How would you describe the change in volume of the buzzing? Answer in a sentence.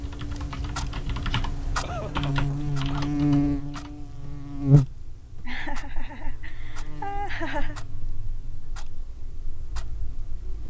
The loudness of the buzzing goes up, then down.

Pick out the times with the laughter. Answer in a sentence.
You can hear the laughter from 1.3 to 3.1 s and from 5.5 to 7.8 s.